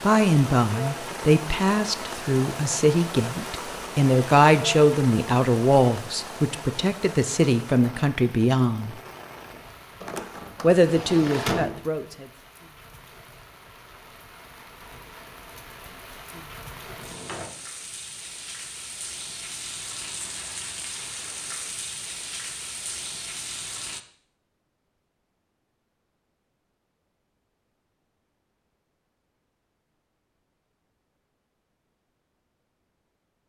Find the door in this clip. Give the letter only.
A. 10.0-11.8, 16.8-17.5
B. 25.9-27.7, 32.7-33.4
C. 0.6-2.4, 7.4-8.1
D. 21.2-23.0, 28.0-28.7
A.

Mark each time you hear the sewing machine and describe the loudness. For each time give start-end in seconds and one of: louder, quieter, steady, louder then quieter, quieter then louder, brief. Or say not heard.
not heard.